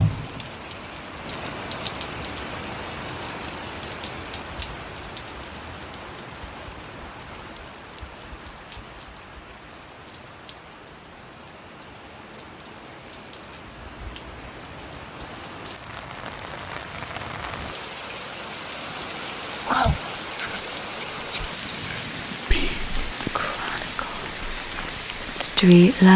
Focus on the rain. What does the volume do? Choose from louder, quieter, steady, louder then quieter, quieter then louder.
quieter then louder.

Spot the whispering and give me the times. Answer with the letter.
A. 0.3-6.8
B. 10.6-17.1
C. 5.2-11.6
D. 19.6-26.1
D.